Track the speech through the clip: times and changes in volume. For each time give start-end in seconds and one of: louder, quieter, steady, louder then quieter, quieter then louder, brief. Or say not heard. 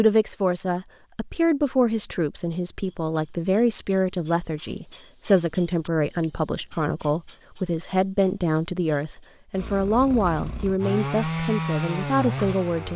0.0-12.9 steady.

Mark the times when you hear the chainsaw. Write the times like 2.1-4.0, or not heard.
9.6-12.9.